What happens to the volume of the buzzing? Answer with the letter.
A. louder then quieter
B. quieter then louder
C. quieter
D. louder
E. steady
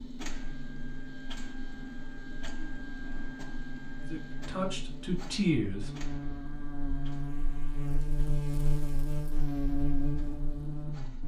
D.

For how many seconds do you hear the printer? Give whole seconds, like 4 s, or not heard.
11 s.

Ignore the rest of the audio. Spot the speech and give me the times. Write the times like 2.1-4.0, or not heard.
4.0-5.9.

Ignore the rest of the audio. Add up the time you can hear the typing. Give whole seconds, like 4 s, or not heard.
not heard.